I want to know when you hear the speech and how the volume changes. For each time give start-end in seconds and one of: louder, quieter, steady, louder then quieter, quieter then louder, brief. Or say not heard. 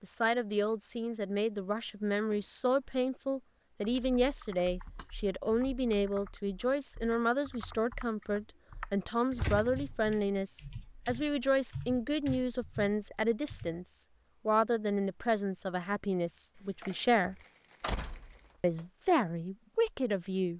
0.0-17.4 steady
18.6-20.5 brief.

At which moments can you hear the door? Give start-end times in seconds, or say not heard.
2.2-3.0, 9.3-9.9, 17.8-18.8.